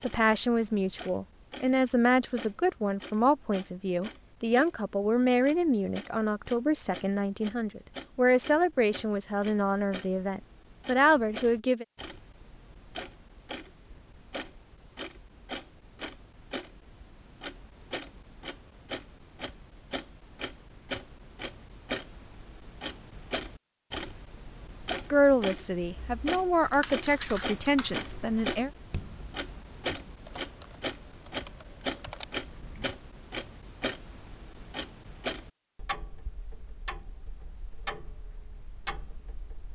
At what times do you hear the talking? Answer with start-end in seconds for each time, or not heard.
0.0-11.8, 25.1-28.7.